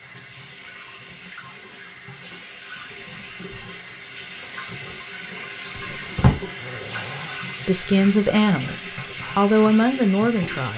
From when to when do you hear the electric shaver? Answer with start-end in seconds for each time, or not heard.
not heard.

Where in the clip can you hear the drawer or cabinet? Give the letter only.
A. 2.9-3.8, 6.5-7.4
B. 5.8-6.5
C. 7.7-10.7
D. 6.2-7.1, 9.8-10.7
B.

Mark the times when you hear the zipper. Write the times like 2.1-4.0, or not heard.
2.9-3.8, 6.5-7.4.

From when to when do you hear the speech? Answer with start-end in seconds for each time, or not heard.
7.7-10.7.